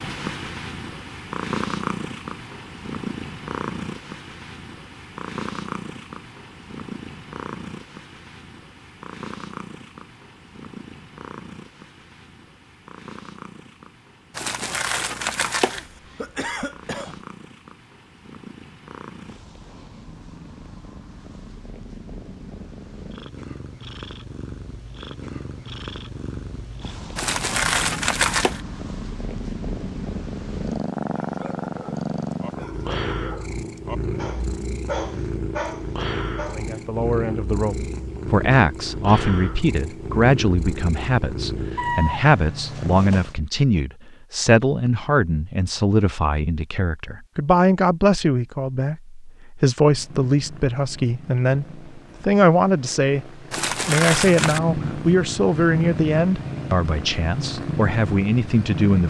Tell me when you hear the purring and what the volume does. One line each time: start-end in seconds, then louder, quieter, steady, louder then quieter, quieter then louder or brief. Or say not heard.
0.0-43.4 quieter then louder
49.8-59.0 louder.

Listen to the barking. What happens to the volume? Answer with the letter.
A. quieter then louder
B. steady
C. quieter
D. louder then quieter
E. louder
E.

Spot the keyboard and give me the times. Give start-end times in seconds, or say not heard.
not heard.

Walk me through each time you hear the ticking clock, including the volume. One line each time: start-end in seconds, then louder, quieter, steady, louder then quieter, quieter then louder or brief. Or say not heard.
not heard.